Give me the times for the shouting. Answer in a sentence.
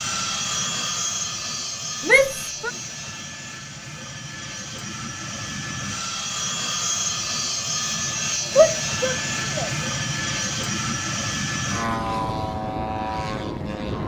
You can hear the shouting from 2.0 to 2.7 s and from 8.6 to 9.7 s.